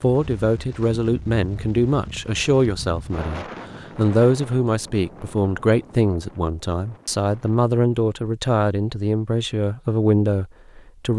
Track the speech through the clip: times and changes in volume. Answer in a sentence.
The speech can be heard from 0.0 to 11.1 s, at a steady volume.